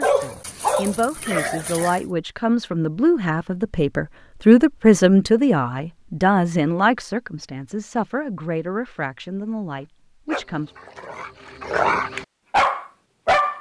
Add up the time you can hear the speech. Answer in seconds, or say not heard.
11 s.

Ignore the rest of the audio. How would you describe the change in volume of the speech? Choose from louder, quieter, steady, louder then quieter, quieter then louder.
louder then quieter.